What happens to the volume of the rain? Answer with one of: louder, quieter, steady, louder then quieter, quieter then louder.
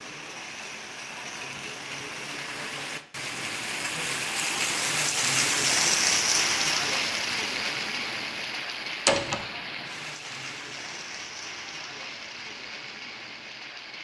louder then quieter.